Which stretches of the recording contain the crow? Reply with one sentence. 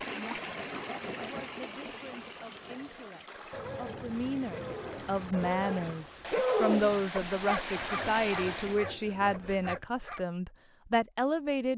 You can't hear the crow here.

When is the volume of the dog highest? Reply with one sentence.
The volume of the dog peaks at 7 seconds.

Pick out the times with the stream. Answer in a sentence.
The stream can be heard from 0.0 to 8.8 s.